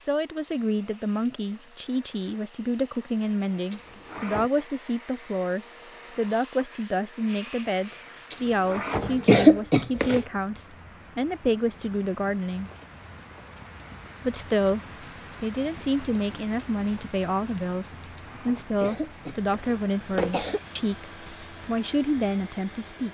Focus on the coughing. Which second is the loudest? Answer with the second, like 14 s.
9 s.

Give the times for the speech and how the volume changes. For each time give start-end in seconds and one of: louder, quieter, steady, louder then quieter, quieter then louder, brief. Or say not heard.
0.1-12.7 steady
14.2-14.8 brief
15.4-23.1 steady.